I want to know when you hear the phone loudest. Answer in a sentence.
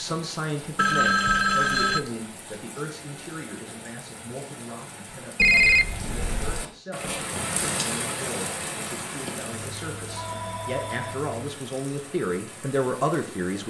The volume of the phone peaks at 6 seconds.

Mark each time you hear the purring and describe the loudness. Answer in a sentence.
You can't hear the purring here.